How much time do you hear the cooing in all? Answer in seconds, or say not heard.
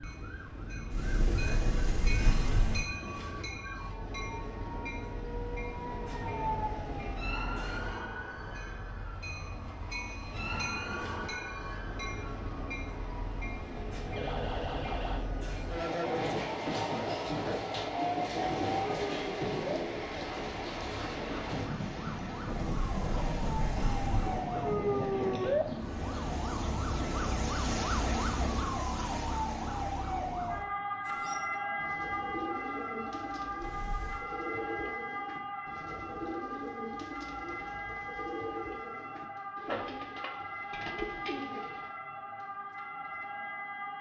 11 s.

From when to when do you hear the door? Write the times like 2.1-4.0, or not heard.
0.9-2.9, 22.6-24.4, 33.6-34.2.